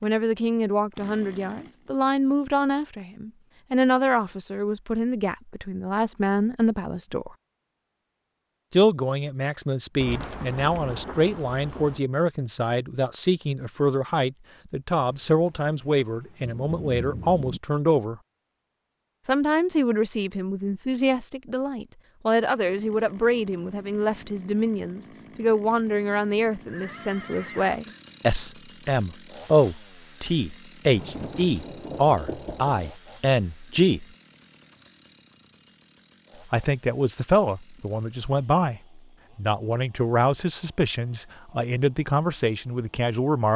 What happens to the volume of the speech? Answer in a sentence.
The volume of the speech stays about the same.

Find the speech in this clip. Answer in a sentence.
You can hear the speech from 0.0 to 7.3 s, from 8.7 to 18.2 s, from 19.2 to 34.0 s and from 36.5 to 43.5 s.